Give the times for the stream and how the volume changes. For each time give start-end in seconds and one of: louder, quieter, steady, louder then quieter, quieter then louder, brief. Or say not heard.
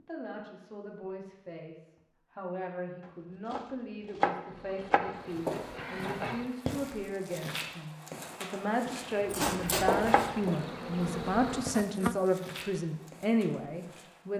not heard.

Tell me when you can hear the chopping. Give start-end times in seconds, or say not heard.
3.5-5.0, 9.4-10.3.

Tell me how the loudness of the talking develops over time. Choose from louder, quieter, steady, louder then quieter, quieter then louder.
louder.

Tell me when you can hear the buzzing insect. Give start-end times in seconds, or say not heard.
4.4-6.5, 9.0-12.3.